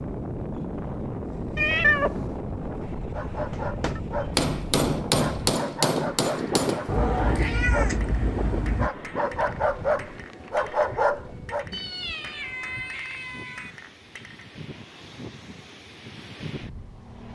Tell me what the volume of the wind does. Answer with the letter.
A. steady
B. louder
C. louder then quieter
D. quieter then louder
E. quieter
E.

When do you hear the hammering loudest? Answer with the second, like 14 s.
5 s.